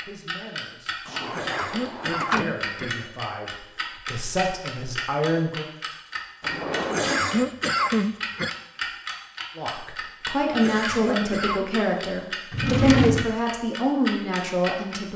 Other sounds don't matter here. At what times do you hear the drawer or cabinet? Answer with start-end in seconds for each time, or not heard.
1.1-2.5, 6.4-7.5, 12.5-13.3.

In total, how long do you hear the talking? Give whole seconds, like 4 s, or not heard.
11 s.